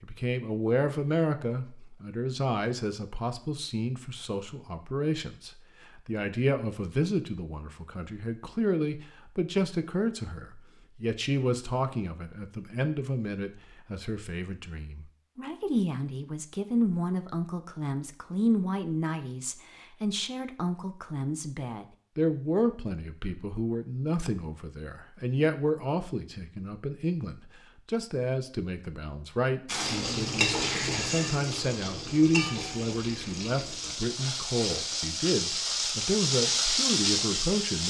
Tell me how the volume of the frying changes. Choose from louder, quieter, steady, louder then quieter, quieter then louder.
quieter then louder.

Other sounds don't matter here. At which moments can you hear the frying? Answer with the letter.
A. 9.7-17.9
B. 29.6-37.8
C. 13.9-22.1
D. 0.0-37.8
B.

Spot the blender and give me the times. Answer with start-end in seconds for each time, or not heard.
not heard.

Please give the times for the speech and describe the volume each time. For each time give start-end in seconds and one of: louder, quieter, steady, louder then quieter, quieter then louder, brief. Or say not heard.
0.0-37.8 steady.